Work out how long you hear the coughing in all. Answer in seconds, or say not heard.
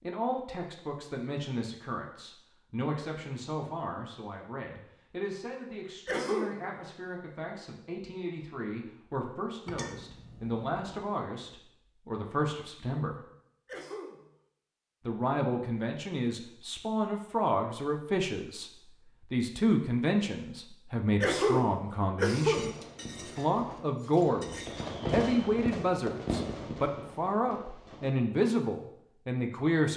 3 s.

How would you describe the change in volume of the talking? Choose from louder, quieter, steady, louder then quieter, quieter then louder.
louder.